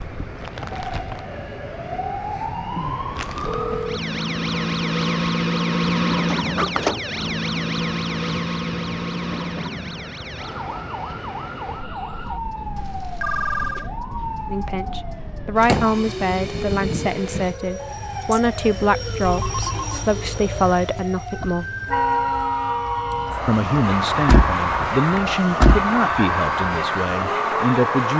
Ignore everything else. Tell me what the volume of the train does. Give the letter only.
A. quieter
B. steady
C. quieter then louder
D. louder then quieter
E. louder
E.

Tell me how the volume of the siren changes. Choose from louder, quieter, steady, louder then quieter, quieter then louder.
quieter.